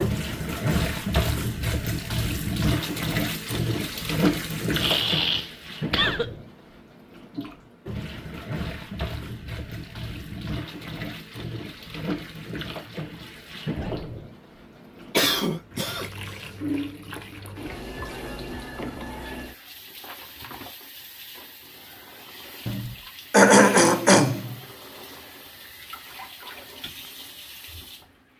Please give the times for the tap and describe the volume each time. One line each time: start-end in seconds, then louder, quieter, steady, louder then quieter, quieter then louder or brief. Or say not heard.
0.0-28.1 quieter.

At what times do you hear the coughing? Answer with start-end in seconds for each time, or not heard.
4.8-6.3, 15.1-16.5, 22.6-24.6.